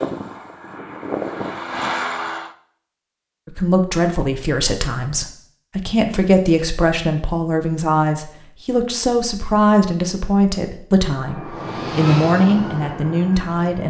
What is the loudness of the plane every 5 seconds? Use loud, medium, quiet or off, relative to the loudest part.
loud, off, loud.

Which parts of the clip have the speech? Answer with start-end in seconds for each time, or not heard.
3.5-13.8.